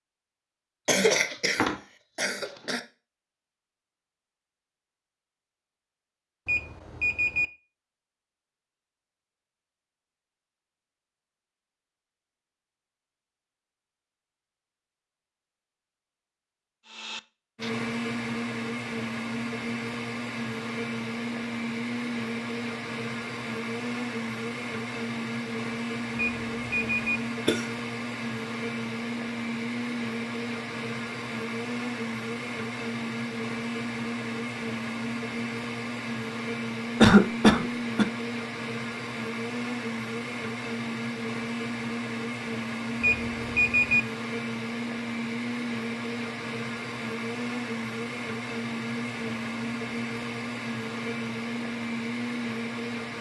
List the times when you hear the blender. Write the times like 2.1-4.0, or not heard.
16.9-53.1.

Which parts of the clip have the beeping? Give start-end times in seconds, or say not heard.
6.5-7.5, 26.1-27.2, 43.0-44.0.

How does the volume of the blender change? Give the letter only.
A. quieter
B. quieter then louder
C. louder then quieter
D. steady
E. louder
D.